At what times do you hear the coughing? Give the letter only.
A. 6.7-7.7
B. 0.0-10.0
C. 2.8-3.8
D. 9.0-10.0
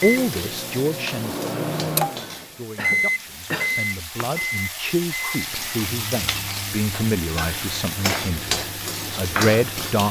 C.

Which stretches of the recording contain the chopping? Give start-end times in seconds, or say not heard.
not heard.